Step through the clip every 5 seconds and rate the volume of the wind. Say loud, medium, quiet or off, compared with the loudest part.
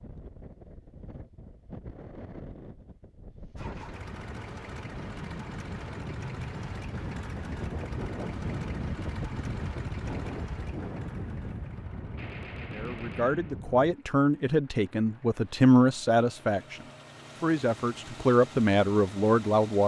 medium, loud, loud, off.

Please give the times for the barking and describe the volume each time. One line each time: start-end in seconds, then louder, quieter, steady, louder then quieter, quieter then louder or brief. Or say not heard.
not heard.